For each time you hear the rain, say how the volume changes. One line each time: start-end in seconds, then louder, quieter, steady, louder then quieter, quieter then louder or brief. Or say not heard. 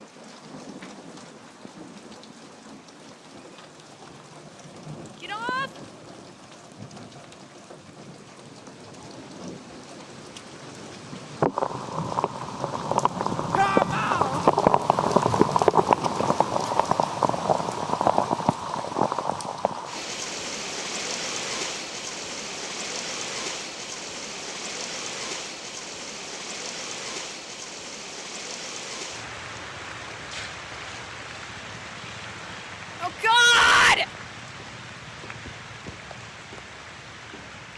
0.0-37.7 louder then quieter.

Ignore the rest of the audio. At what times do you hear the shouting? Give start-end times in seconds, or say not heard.
5.2-5.7, 13.6-14.4, 33.0-34.0.